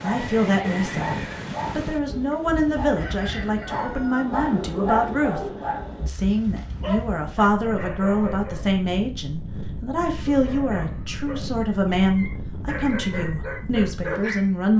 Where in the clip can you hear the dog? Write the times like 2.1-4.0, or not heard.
0.0-8.8, 10.1-14.4.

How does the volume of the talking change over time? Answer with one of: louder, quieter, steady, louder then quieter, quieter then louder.
steady.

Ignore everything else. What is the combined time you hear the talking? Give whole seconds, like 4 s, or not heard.
15 s.